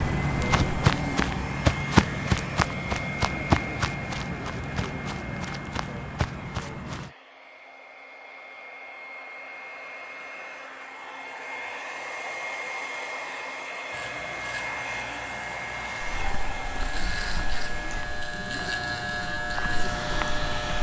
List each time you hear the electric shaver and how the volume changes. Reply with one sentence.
You can hear the electric shaver from 13.9 to 20.7 s, getting louder.